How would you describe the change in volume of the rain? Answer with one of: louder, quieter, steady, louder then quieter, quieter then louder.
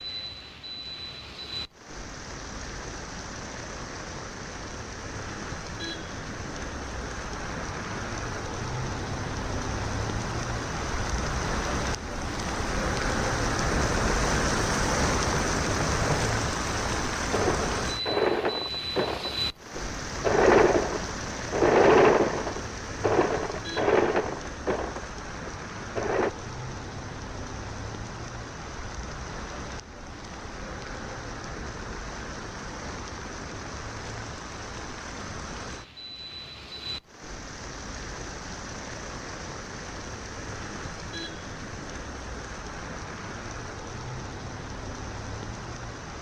louder then quieter.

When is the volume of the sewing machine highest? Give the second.
22 s.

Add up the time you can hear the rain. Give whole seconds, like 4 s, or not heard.
46 s.